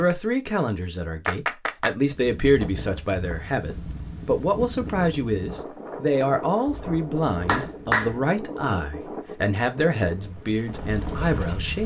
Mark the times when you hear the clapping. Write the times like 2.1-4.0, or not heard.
1.2-1.9, 6.7-8.2.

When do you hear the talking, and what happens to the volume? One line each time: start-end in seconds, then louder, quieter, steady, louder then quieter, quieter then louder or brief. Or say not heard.
0.0-11.8 steady.